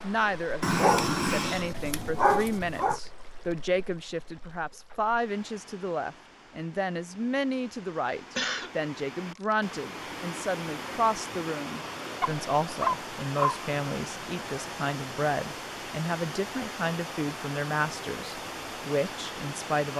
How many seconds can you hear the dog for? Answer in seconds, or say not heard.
4 s.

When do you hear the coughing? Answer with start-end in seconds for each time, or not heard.
8.2-8.7.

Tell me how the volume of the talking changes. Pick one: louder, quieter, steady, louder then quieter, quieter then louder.
steady.